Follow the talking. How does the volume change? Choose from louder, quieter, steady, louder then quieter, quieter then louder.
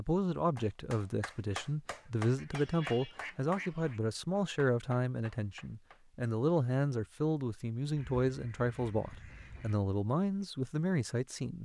steady.